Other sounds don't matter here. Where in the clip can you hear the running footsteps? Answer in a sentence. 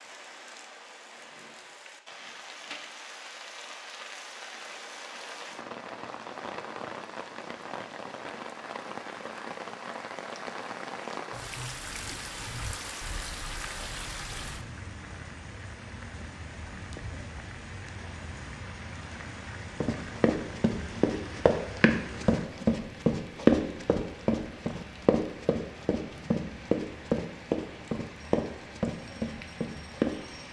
You can hear the running footsteps from 19.8 to 30.1 s.